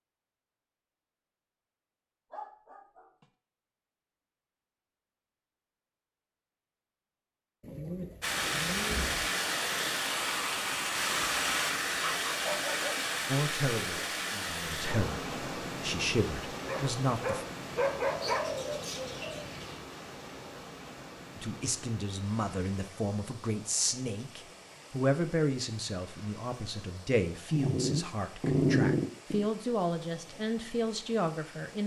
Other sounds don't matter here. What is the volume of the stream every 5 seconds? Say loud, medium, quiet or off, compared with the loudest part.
off, loud, loud, medium, quiet, quiet, quiet.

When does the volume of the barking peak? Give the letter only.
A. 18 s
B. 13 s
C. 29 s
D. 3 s
C.